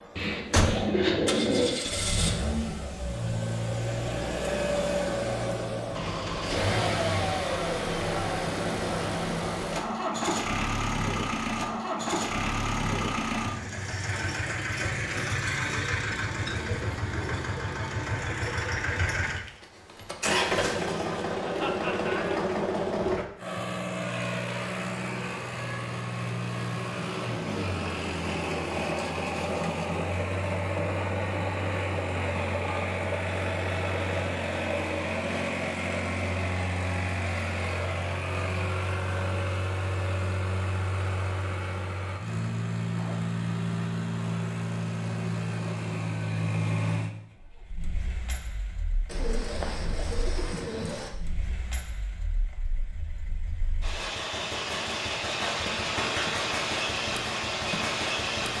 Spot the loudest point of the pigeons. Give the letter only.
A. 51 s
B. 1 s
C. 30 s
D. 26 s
B.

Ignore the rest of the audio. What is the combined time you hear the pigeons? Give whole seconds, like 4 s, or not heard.
4 s.